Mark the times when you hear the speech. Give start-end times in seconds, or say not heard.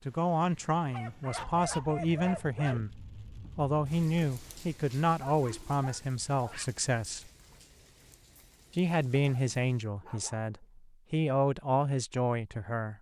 0.1-7.3, 8.8-12.9.